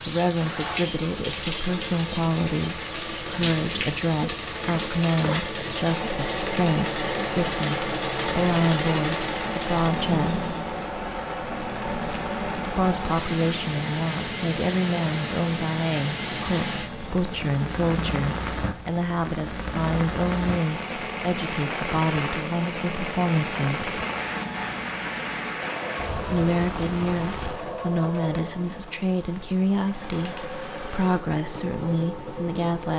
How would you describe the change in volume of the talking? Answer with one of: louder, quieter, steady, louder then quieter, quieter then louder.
steady.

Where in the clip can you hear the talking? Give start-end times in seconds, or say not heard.
0.1-10.5, 12.7-24.0, 26.2-32.9.